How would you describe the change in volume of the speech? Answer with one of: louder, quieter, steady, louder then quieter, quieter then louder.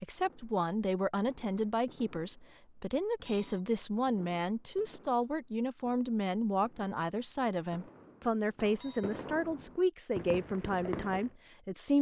steady.